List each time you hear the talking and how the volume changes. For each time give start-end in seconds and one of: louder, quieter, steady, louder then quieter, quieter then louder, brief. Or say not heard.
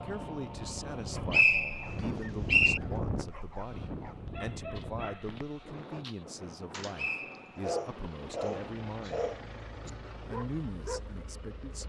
0.0-11.8 steady.